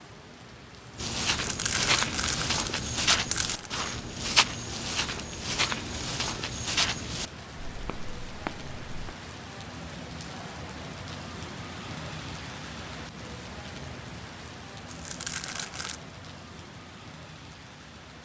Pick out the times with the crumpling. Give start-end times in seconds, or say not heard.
1.3-3.7, 14.8-16.0.